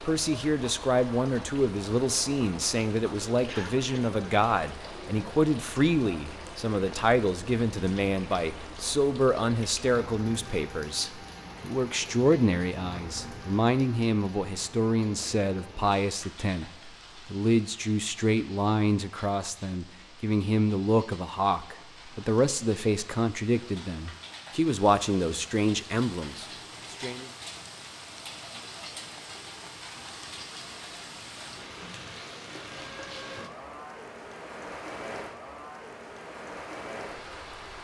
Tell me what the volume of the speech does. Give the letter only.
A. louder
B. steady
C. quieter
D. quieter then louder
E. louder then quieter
B.